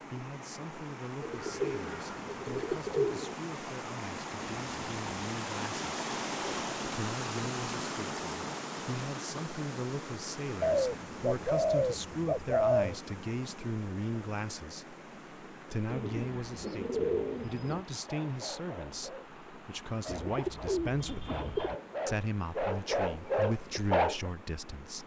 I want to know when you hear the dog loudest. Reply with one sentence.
The volume of the dog peaks at 24 seconds.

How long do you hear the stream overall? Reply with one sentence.
You can hear the stream for 25 seconds altogether.